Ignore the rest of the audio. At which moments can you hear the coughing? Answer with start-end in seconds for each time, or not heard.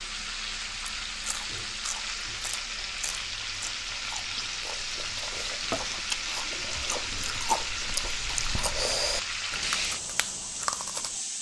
not heard.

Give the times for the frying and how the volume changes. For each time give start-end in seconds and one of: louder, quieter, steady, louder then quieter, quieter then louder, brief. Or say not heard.
0.0-11.3 steady.